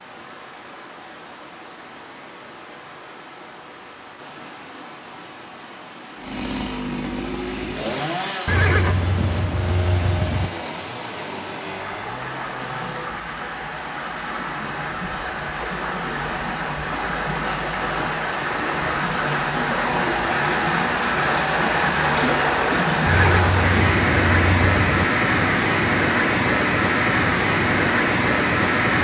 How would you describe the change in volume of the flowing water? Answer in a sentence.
The volume of the flowing water goes up.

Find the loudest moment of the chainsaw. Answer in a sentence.
The volume of the chainsaw peaks at 8 seconds.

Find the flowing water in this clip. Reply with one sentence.
The flowing water can be heard from 0.0 to 28.9 s.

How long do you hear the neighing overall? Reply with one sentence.
You can hear the neighing for 4 seconds altogether.